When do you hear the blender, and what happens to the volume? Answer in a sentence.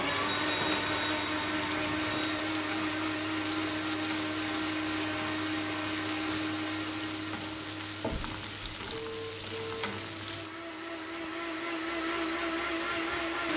You can hear the blender from 0.0 to 13.5 s, getting quieter then louder.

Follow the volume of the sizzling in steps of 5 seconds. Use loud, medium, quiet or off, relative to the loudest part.
loud, loud, medium.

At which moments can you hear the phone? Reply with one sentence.
You can hear the phone from 0.1 to 2.4 s and from 8.1 to 9.9 s.